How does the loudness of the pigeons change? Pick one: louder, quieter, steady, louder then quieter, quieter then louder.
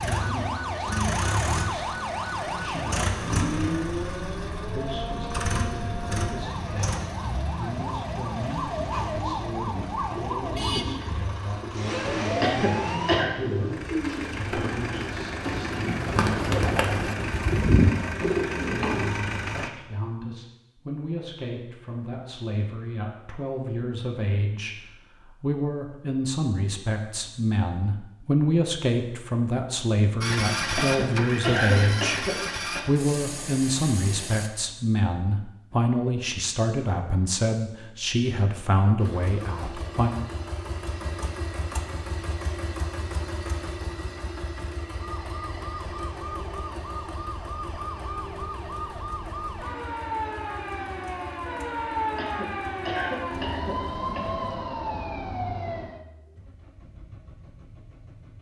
louder.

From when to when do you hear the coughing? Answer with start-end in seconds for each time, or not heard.
12.4-13.3, 30.8-32.8, 52.1-54.5.